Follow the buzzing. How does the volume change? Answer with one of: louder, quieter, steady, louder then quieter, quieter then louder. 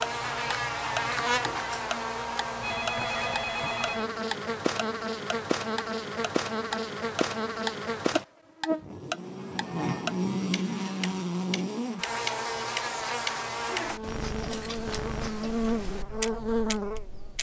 steady.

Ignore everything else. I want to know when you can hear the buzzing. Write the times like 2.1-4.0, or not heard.
0.0-17.3.